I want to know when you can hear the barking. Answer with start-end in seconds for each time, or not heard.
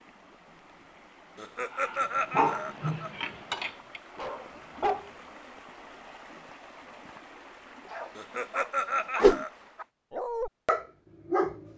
1.7-5.0, 7.8-11.7.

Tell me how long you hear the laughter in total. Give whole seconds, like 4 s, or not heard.
3 s.